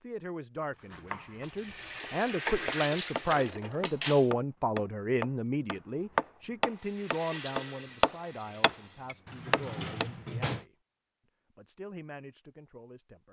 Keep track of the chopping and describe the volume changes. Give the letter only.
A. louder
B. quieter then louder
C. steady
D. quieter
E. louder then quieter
A.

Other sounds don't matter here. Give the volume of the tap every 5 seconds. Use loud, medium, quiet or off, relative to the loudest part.
loud, medium, off.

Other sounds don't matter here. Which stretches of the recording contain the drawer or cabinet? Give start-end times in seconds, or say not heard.
3.3-4.3, 9.2-10.7.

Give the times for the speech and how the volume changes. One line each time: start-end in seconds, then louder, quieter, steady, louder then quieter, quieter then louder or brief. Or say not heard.
0.0-10.8 louder then quieter
11.6-13.2 brief.